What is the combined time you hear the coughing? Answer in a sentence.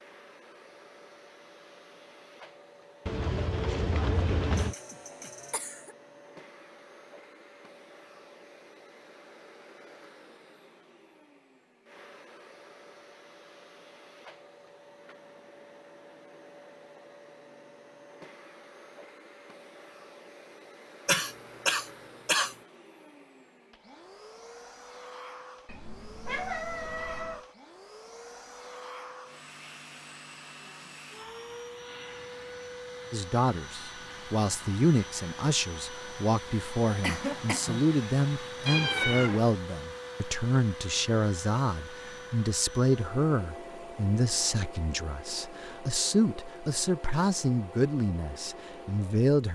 The coughing can be heard for 5 seconds in total.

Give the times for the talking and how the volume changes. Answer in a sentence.
You can hear the talking from 33.1 to 49.5 s, at a steady volume.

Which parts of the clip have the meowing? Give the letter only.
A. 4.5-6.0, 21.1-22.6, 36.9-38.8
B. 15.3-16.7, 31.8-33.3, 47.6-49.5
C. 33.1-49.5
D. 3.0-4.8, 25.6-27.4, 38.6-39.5
D.